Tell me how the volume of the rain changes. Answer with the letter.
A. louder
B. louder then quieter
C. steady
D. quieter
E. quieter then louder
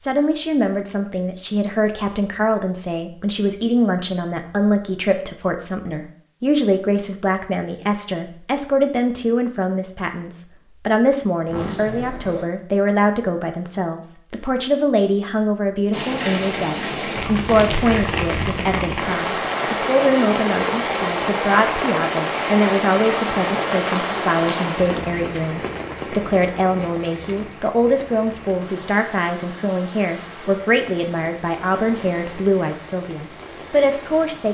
D.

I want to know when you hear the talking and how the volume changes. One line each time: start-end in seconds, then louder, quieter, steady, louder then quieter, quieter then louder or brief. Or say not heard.
0.0-34.4 steady.